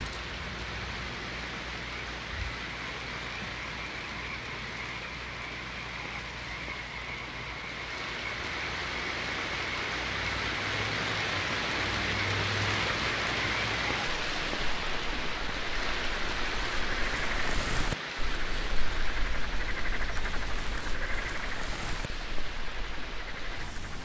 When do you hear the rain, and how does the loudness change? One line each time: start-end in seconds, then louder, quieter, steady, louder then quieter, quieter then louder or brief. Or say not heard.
0.0-24.0 louder then quieter.